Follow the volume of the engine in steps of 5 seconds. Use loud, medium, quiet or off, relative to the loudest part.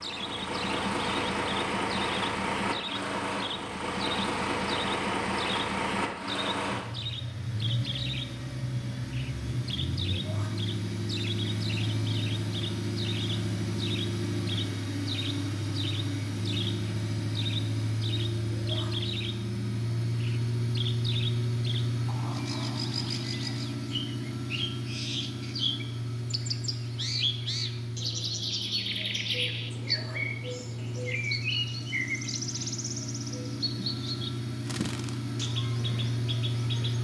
loud, loud, loud, loud, loud, medium, medium, loud.